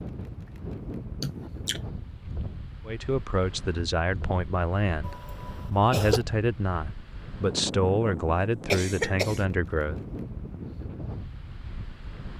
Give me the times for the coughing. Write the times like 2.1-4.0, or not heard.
1.2-1.8, 5.0-6.2, 8.7-9.4.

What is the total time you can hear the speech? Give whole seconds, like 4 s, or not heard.
7 s.